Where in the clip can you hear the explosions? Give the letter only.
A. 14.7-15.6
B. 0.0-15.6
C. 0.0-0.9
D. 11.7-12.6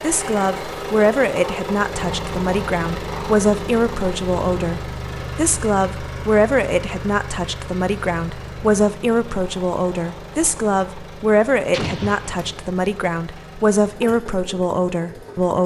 D.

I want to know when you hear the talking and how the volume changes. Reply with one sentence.
You can hear the talking from 0.0 to 15.6 s, at a steady volume.